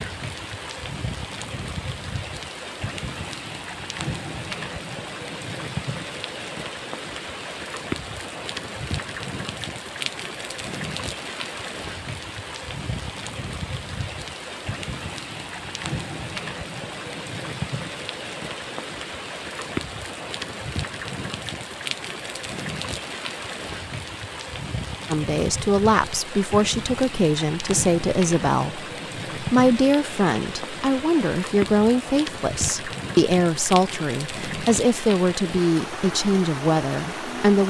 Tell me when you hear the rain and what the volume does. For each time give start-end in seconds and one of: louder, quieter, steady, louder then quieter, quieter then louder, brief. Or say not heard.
0.0-37.6 steady.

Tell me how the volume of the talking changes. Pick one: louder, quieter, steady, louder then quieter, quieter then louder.
steady.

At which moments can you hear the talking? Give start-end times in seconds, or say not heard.
25.1-37.6.